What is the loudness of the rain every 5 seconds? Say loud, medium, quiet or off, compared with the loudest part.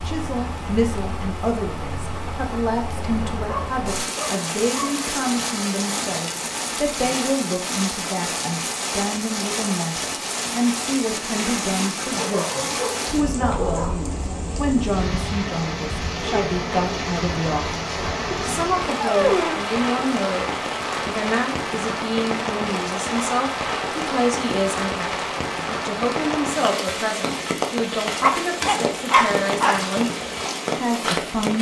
medium, loud, loud, loud, loud, loud, loud.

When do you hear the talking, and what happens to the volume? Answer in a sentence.
You can hear the talking from 0.1 to 17.8 s, at a steady volume; and from 18.4 to 31.5 s, at a steady volume.